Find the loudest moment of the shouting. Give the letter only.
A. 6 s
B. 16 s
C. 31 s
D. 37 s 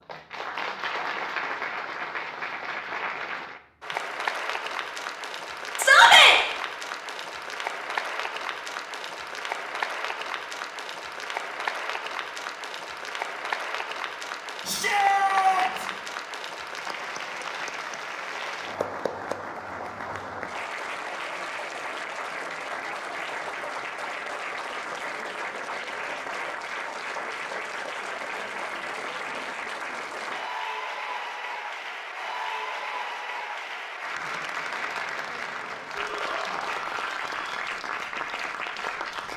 A.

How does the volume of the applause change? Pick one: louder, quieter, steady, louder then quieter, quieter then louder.
steady.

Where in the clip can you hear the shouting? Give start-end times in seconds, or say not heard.
5.8-6.3, 14.7-15.9, 36.0-37.5.